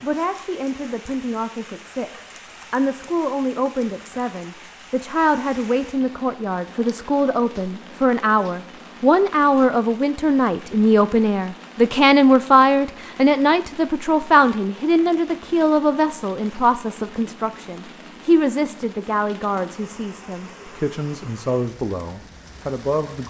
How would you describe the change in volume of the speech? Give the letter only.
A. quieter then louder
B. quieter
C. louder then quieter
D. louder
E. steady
C.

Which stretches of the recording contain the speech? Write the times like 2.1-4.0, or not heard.
0.0-23.2.